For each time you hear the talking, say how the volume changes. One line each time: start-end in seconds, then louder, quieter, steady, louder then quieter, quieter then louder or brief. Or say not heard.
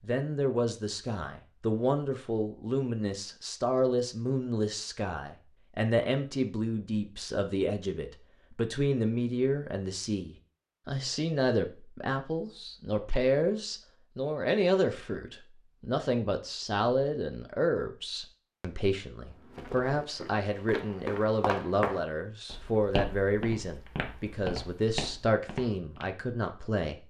0.0-27.0 steady.